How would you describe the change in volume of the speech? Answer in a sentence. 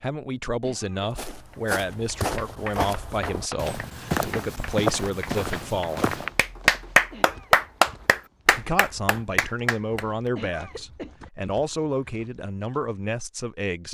The loudness of the speech stays about the same.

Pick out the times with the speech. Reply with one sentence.
You can hear the speech from 0.0 to 6.2 s and from 8.5 to 13.8 s.